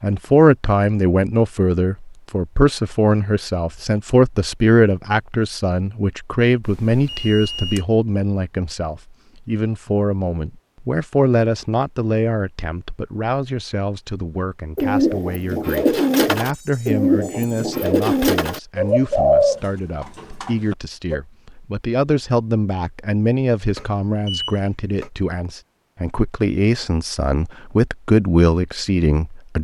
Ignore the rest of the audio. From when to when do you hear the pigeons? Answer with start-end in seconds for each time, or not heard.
14.8-21.2.